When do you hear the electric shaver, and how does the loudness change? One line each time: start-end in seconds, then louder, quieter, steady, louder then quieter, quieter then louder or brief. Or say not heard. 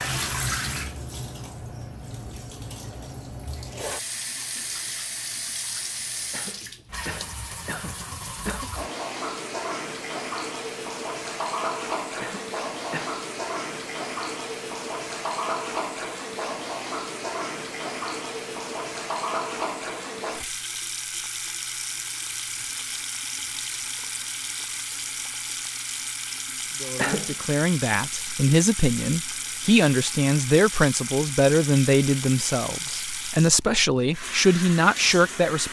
not heard.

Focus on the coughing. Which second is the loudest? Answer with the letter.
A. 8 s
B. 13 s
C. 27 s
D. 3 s
C.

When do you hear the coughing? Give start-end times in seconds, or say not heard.
6.3-8.7, 12.2-13.2, 26.9-27.4.